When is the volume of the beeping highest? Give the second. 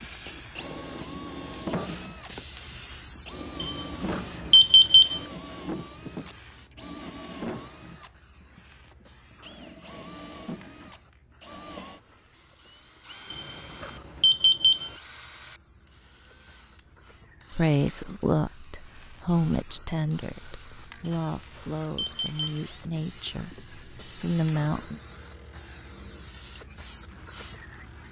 5 s.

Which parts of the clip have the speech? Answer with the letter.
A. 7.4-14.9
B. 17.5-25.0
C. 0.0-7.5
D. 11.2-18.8
B.